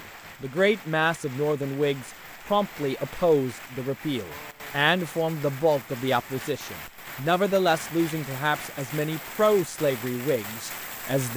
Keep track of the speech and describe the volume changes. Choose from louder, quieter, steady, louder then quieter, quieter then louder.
steady.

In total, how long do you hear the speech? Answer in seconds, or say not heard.
11 s.